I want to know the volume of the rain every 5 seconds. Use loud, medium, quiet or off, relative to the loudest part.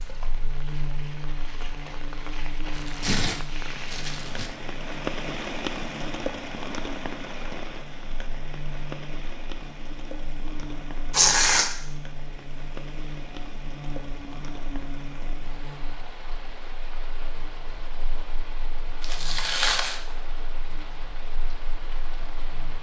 medium, loud, medium, medium, medium.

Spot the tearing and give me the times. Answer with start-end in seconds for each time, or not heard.
2.7-4.5, 11.1-11.7, 19.0-20.0.